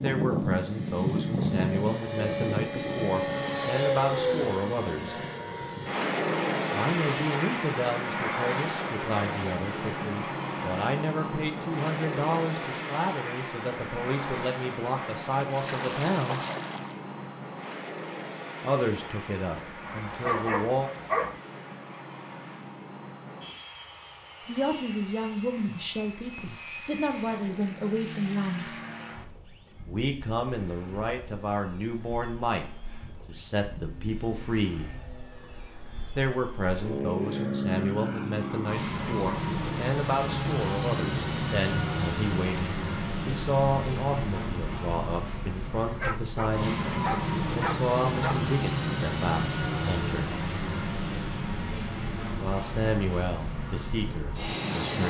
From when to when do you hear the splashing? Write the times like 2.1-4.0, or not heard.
15.3-17.0.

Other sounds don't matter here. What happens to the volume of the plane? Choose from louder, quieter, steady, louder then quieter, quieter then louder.
quieter then louder.